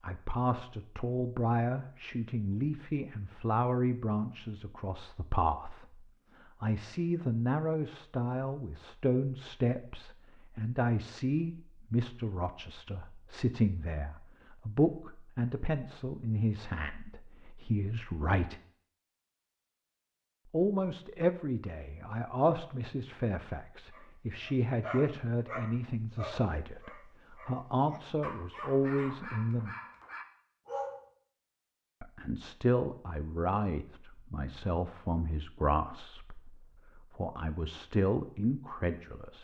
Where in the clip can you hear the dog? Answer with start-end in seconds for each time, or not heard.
23.9-31.1.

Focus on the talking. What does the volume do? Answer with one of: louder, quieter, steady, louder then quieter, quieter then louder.
steady.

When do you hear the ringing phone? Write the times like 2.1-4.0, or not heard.
not heard.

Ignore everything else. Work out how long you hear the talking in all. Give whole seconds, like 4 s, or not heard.
35 s.